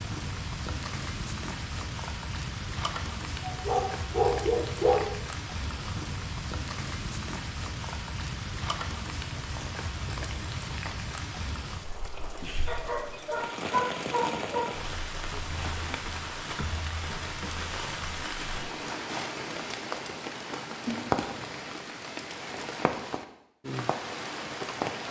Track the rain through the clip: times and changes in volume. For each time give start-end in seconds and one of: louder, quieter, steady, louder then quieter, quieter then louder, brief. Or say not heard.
0.0-25.0 steady.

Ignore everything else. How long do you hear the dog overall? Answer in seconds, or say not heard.
4 s.